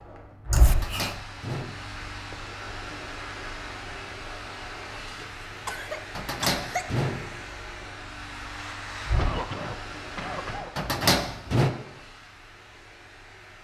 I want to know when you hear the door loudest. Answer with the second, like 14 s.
11 s.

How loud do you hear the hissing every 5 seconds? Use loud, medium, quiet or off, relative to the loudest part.
loud, loud, medium.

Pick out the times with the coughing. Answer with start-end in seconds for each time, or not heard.
0.5-1.1, 5.0-6.8, 9.2-10.9.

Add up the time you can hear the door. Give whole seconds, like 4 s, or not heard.
4 s.